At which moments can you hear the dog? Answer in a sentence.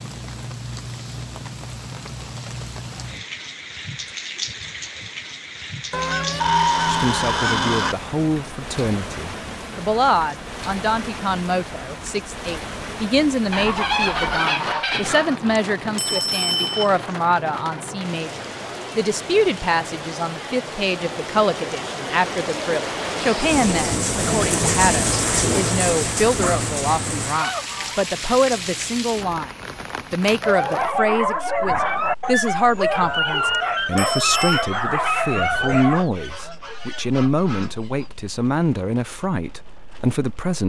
You can hear the dog from 30.4 to 36.0 s.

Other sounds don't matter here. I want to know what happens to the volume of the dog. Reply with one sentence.
The loudness of the dog stays about the same.